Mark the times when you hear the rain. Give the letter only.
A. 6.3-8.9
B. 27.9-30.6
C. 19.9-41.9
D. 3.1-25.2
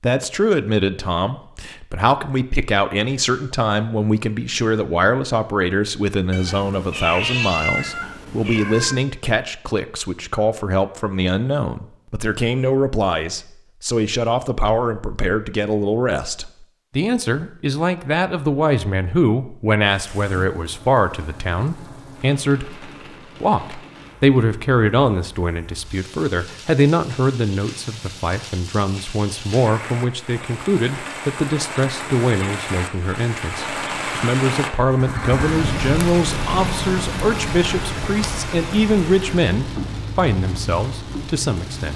C.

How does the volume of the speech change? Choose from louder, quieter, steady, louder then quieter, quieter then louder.
steady.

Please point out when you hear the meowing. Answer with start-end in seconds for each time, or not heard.
6.3-8.9.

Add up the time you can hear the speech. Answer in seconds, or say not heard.
42 s.